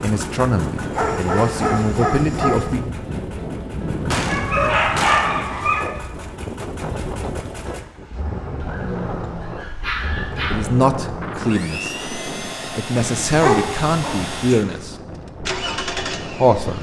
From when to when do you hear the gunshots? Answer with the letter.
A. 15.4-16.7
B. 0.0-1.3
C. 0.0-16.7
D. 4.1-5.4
D.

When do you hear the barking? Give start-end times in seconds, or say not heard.
0.9-2.6, 4.2-5.9, 8.6-10.6, 12.9-14.8.